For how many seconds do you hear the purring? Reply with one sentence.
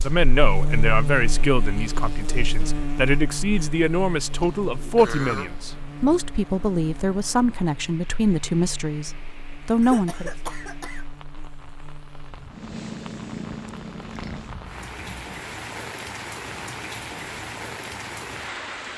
You can hear the purring for 3 seconds altogether.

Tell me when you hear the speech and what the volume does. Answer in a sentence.
The speech can be heard from 0.0 to 10.3 s, at a steady volume.